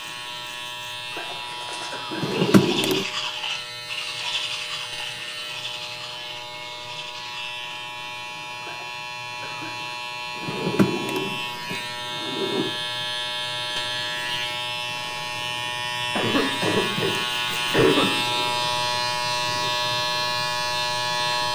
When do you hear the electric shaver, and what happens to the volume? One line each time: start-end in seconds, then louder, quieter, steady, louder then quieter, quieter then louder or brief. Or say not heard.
0.0-21.5 louder.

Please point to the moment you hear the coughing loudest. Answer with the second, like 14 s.
18 s.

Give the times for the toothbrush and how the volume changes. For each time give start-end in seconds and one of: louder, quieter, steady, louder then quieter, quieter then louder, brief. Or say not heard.
1.4-7.7 quieter.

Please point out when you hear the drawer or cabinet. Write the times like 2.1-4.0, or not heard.
2.1-3.0, 10.3-12.8, 17.6-19.7.